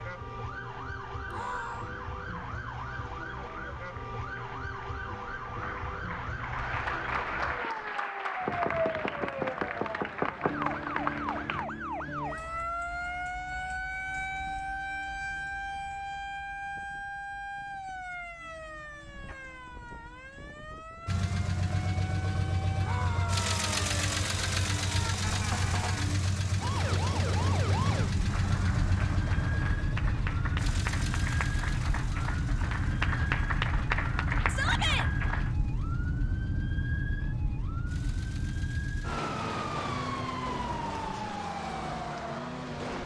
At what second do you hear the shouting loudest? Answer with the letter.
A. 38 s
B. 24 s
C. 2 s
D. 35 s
D.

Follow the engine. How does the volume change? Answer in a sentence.
The volume of the engine goes down.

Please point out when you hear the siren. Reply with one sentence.
The siren can be heard from 0.0 to 43.0 s.